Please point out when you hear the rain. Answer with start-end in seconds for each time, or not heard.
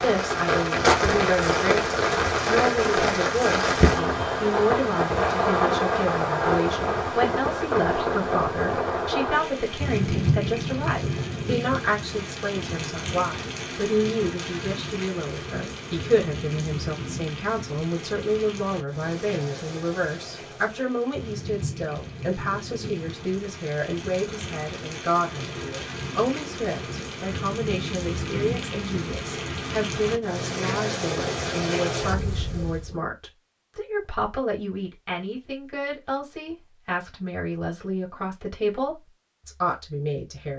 0.0-33.0.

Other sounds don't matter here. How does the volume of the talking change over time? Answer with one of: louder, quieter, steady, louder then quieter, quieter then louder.
steady.